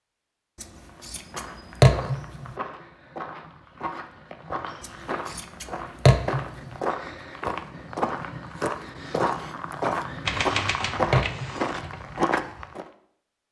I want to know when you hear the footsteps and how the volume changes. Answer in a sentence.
You can hear the footsteps from 0.8 to 12.9 s, getting louder.